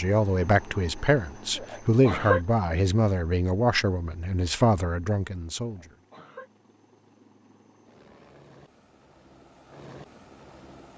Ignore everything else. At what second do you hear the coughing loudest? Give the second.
2 s.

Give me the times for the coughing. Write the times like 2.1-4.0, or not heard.
1.6-2.4, 5.6-6.5.